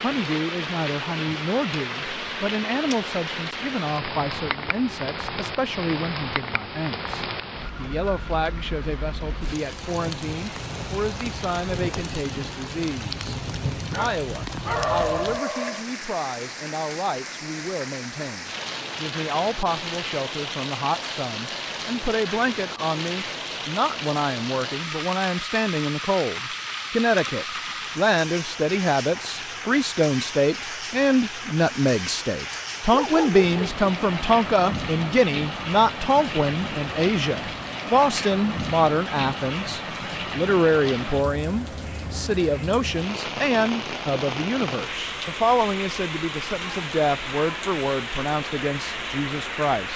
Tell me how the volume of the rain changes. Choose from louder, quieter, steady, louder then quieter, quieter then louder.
steady.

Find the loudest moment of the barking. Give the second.
15 s.